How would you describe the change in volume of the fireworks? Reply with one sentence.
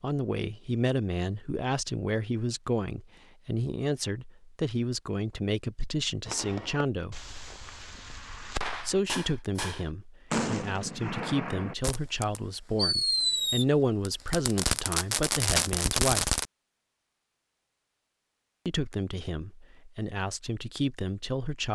The volume of the fireworks goes up.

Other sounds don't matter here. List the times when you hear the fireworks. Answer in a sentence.
You can hear the fireworks from 6.2 to 16.4 s.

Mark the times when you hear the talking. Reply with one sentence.
The talking can be heard from 0.0 to 7.2 s, from 8.8 to 16.4 s and from 18.6 to 21.7 s.